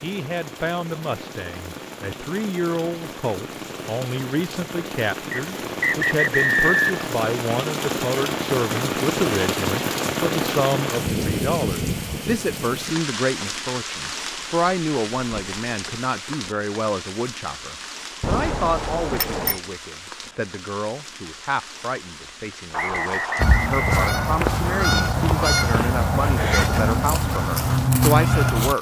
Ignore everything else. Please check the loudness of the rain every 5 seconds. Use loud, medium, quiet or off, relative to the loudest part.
medium, loud, loud, medium, quiet, quiet.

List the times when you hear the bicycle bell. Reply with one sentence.
The bicycle bell can be heard from 18.2 to 19.6 s.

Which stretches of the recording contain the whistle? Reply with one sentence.
The whistle can be heard from 5.3 to 6.8 s and from 22.7 to 24.4 s.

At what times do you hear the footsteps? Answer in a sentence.
The footsteps can't be heard in this clip.